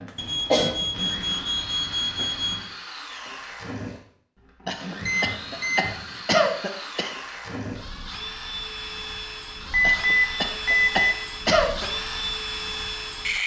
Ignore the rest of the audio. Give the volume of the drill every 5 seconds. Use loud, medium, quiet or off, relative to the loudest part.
medium, medium, loud.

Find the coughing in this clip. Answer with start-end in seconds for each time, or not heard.
0.1-0.8, 4.7-7.1, 9.8-11.8.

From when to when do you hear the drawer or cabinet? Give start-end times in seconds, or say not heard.
not heard.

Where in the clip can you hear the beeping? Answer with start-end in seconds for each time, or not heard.
0.1-2.6, 5.0-6.2, 9.7-11.1.